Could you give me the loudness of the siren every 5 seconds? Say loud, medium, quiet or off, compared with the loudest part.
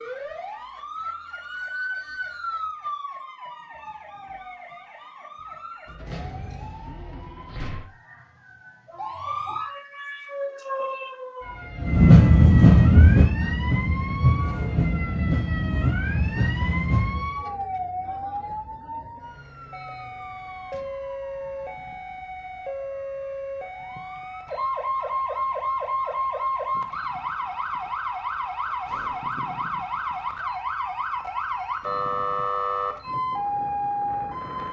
medium, medium, medium, medium, medium, loud, loud.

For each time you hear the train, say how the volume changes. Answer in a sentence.
You can hear the train from 11.8 to 17.3 s, getting quieter.